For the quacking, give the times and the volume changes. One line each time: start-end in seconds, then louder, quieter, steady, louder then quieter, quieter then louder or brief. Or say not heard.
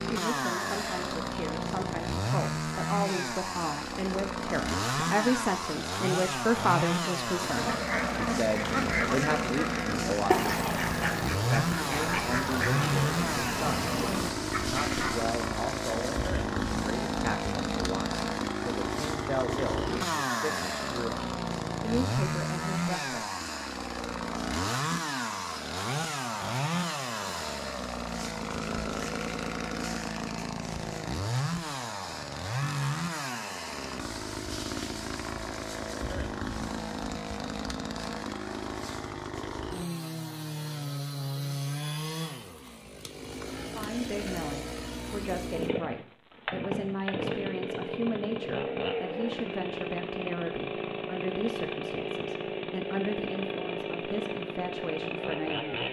7.4-15.2 steady.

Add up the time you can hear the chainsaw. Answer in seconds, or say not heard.
56 s.